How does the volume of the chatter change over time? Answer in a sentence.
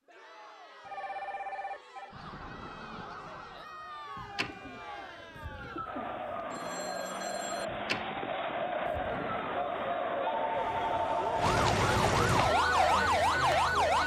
The volume of the chatter goes up.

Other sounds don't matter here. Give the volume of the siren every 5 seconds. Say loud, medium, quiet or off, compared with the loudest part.
quiet, quiet, loud.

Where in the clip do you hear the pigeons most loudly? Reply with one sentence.
The volume of the pigeons peaks at 6 seconds.